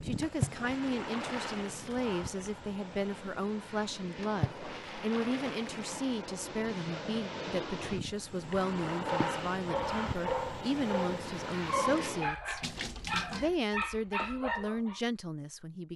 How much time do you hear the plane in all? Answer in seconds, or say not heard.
12 s.